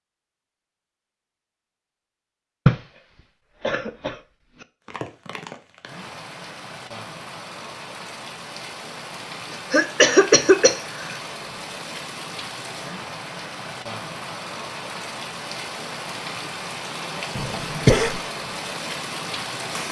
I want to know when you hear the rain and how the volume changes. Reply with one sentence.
The rain can be heard from 4.8 to 19.8 s, getting louder.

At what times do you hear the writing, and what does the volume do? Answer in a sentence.
You can't hear the writing here.